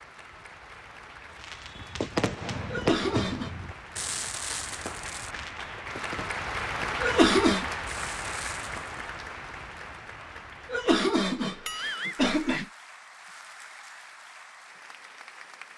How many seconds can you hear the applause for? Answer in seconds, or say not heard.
16 s.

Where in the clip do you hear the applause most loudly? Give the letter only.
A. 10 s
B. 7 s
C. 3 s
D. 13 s
B.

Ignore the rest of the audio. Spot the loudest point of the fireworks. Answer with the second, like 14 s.
3 s.